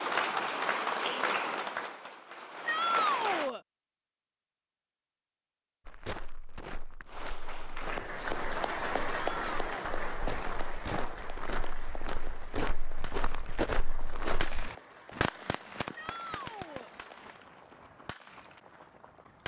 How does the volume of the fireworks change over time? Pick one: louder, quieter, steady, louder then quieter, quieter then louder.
louder then quieter.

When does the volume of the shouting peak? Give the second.
3 s.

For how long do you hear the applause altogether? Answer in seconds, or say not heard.
14 s.